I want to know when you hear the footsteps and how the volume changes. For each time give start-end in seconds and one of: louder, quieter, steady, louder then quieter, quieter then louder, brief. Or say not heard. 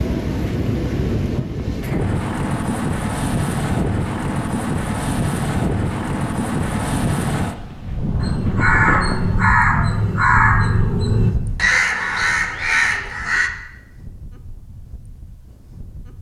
not heard.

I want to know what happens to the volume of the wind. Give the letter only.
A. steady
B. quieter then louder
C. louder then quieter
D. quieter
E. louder
D.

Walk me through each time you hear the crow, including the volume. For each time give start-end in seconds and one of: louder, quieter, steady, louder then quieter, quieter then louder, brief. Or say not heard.
8.2-13.5 steady.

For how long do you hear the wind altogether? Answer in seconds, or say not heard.
16 s.